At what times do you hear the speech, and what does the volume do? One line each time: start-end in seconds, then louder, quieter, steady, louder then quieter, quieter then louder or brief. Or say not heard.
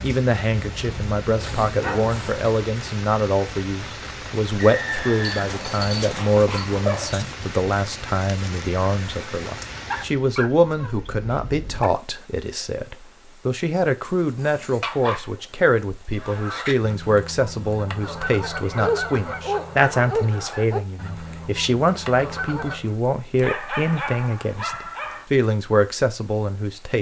0.0-26.9 steady.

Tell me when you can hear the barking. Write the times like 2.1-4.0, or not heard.
0.5-2.5, 5.3-7.2, 9.8-11.9, 14.1-15.4, 18.8-20.8, 23.4-25.2.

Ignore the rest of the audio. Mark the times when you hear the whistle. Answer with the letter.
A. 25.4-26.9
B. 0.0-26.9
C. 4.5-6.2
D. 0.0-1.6
C.